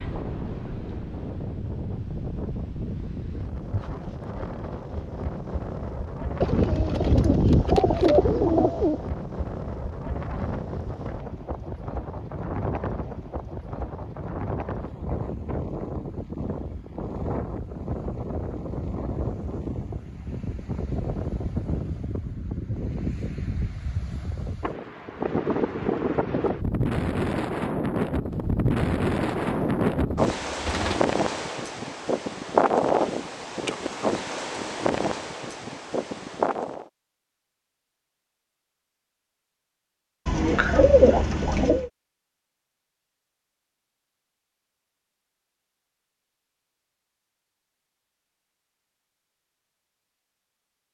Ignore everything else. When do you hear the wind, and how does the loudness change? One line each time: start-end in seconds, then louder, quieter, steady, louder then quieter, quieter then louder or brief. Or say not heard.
0.0-36.9 louder.